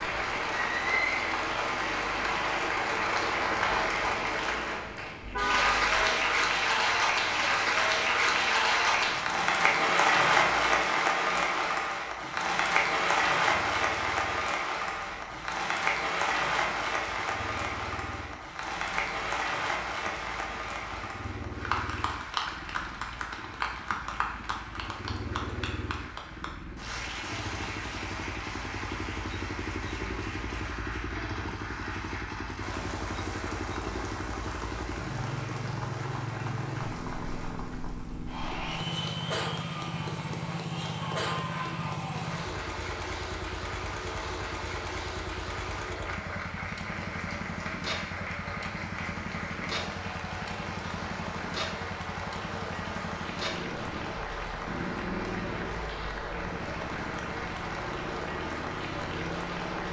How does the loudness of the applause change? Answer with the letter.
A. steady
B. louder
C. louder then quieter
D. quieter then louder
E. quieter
E.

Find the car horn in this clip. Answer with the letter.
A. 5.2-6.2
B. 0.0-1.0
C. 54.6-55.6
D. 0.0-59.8
A.